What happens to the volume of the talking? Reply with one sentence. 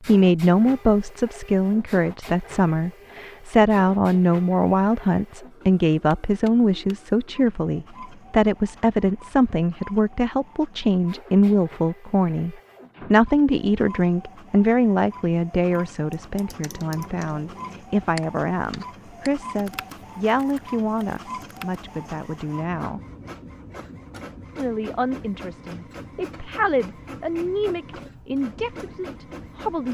The volume of the talking goes down.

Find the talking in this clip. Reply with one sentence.
The talking can be heard from 0.1 to 23.0 s and from 24.6 to 29.8 s.